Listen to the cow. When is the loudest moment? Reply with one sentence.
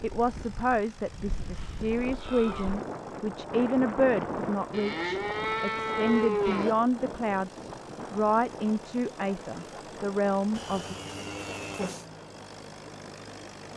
The volume of the cow peaks at 6 seconds.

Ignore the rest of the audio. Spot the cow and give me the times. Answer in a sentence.
You can hear the cow from 1.5 to 2.8 s, from 4.7 to 6.8 s and from 10.6 to 12.1 s.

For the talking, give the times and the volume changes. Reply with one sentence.
The talking can be heard from 0.0 to 10.9 s, at a steady volume.